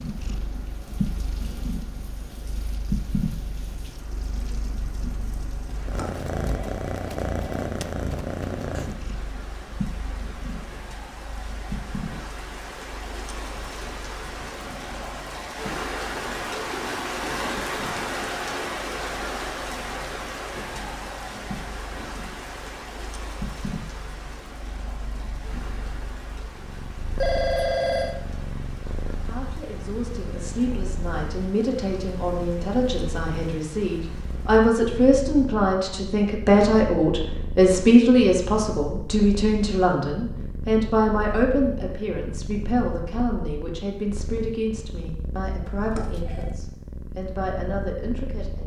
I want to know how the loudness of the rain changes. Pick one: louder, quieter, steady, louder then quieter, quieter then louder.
louder then quieter.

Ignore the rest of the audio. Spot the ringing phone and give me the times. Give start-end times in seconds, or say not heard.
5.8-7.5, 27.2-28.1, 45.6-46.6.